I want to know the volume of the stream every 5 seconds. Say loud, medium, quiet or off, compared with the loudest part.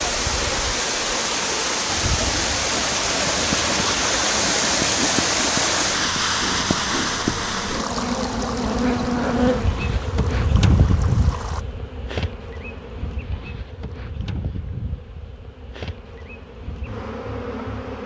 loud, loud, quiet, off.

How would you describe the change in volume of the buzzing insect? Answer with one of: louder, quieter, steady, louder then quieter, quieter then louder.
louder then quieter.